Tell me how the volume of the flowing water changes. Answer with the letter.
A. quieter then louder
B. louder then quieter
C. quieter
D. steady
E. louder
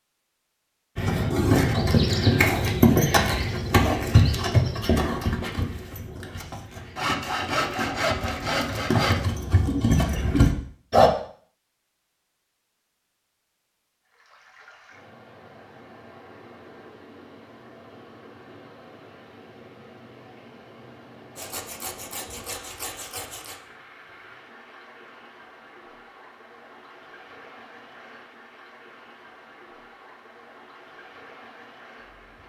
D.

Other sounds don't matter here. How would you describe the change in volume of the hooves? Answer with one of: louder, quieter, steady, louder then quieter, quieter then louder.
quieter then louder.